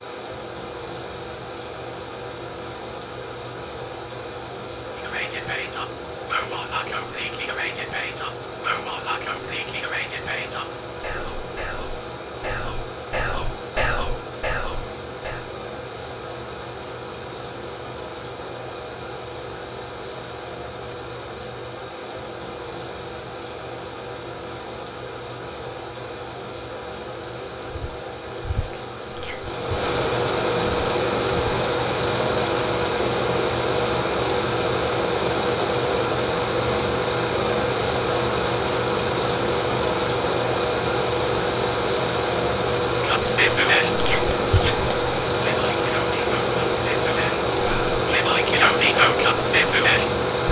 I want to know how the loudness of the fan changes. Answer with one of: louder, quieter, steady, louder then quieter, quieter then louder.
louder.